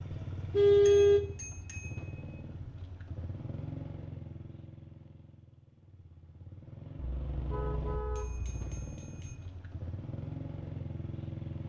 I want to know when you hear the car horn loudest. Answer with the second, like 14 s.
1 s.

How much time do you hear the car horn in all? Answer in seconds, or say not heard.
3 s.